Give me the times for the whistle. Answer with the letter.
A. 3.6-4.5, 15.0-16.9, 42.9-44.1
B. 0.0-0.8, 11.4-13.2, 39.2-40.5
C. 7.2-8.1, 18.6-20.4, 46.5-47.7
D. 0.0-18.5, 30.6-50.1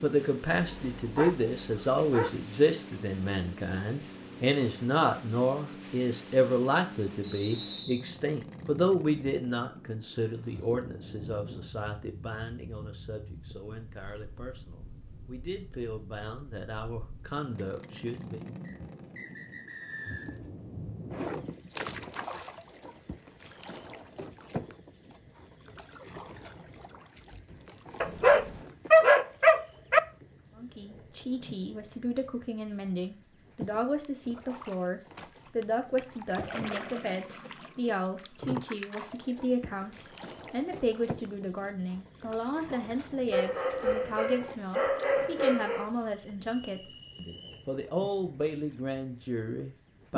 C.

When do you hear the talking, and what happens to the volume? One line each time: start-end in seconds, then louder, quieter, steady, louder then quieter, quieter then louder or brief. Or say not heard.
0.0-18.5 quieter
30.6-50.1 steady.